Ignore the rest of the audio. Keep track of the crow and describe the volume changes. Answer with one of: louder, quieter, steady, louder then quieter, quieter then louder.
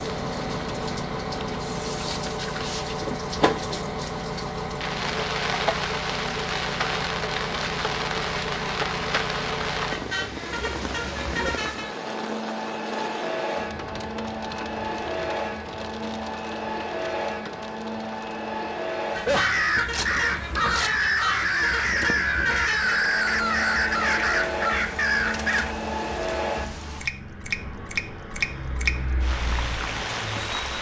steady.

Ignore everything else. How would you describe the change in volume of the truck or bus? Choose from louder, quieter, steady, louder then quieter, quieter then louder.
steady.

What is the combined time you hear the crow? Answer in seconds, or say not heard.
7 s.